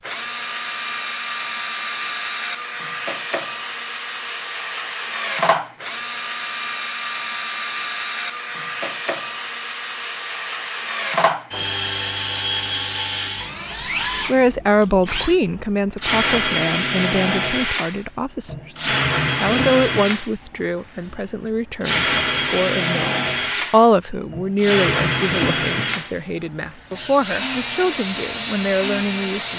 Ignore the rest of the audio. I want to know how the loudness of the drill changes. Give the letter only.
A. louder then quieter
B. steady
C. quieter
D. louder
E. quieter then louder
B.